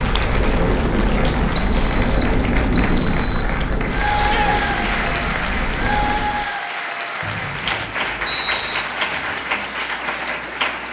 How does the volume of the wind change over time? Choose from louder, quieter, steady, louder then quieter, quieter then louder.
quieter.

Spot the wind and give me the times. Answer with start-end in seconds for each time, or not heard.
0.0-6.5.